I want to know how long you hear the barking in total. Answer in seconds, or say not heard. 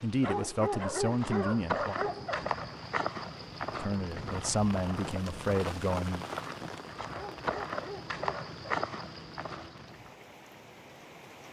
4 s.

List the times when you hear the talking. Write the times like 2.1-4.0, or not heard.
0.0-1.9, 3.8-6.2.